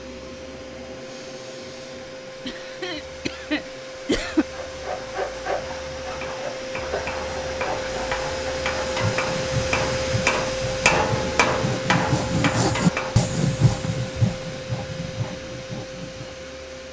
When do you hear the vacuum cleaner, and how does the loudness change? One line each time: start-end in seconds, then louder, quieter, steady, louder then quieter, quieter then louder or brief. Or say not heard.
0.0-16.8 louder then quieter.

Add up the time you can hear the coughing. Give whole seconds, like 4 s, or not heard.
2 s.